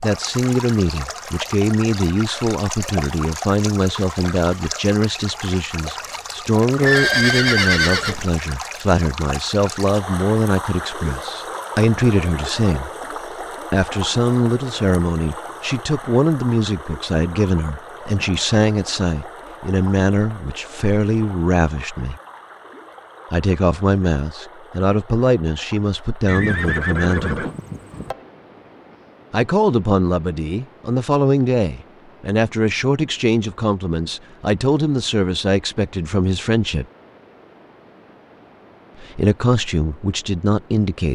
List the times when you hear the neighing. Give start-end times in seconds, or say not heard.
6.8-8.2, 26.2-28.1.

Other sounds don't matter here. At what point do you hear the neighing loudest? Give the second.
7 s.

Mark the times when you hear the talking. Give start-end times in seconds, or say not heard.
0.0-12.9, 13.7-22.1, 23.3-27.4, 29.3-36.9, 39.0-41.1.